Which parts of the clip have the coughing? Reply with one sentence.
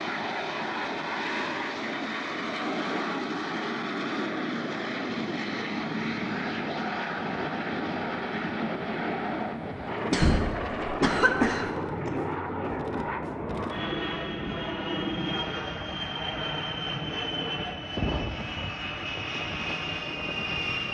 The coughing can be heard from 10.1 to 12.1 s.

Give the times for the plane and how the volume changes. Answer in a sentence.
The plane can be heard from 0.0 to 20.8 s, at a steady volume.